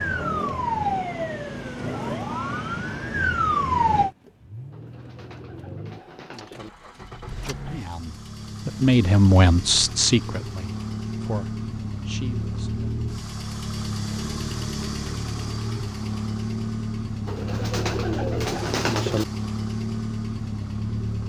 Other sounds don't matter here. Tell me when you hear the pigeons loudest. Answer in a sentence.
The volume of the pigeons peaks at 19 seconds.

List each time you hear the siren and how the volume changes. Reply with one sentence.
The siren can be heard from 0.0 to 4.1 s, getting quieter then louder.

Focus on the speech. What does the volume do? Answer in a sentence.
The volume of the speech goes up, then down.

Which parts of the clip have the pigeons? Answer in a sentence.
You can hear the pigeons from 4.7 to 6.7 s and from 17.2 to 19.2 s.